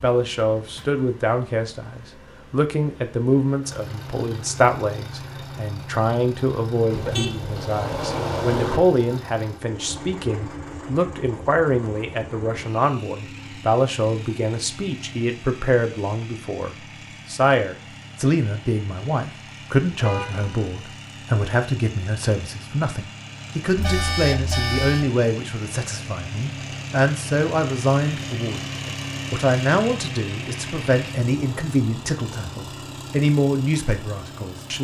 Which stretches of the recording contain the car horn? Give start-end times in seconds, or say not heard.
6.9-8.8, 20.0-20.8, 23.8-25.1.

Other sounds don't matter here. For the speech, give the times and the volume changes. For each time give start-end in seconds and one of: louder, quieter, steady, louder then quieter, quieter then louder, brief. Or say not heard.
0.0-34.8 steady.